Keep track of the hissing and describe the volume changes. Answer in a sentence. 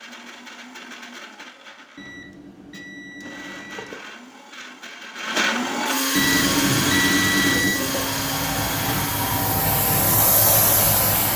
The loudness of the hissing goes up.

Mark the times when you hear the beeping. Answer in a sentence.
The beeping can be heard from 1.9 to 4.0 s and from 6.2 to 7.8 s.